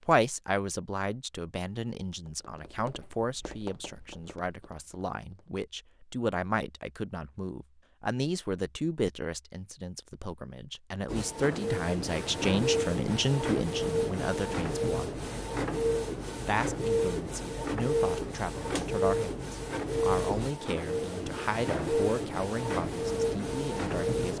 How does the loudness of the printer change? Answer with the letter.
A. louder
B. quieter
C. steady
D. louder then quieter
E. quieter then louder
C.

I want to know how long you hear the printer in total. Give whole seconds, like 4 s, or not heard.
13 s.